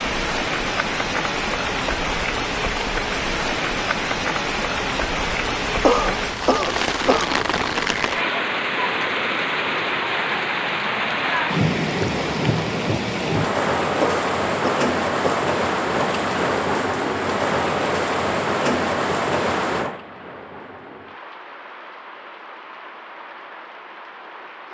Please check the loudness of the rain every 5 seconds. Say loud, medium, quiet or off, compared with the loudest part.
loud, loud, loud, loud, quiet.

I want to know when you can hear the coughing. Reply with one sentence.
You can hear the coughing from 5.8 to 7.4 s and from 14.0 to 15.5 s.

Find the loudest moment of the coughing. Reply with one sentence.
The volume of the coughing peaks at 6 seconds.